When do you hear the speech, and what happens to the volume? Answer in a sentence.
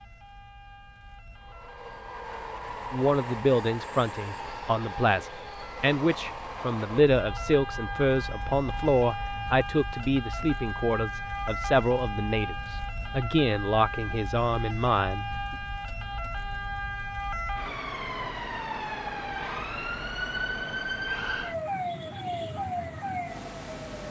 You can hear the speech from 2.9 to 15.6 s, at a steady volume.